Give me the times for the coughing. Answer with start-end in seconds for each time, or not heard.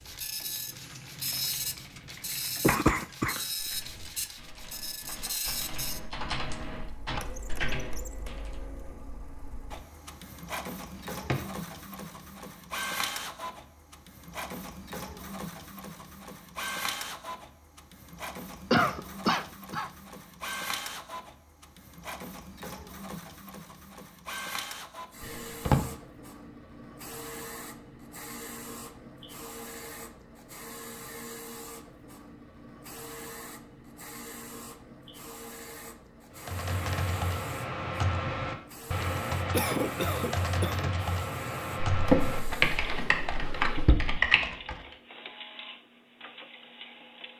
2.6-3.4, 18.7-19.9, 39.5-41.0.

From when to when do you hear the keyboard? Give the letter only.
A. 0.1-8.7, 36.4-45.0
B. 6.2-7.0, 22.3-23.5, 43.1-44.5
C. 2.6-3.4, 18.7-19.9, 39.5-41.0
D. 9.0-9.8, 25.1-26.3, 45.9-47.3
A.